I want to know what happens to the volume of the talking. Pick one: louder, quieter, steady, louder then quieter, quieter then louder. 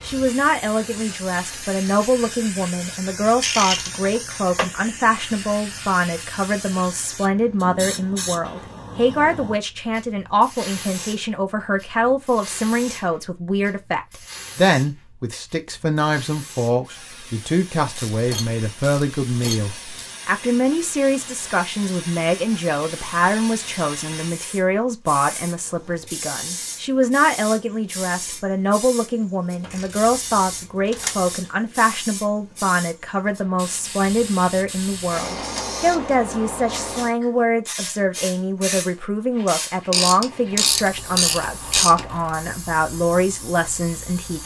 steady.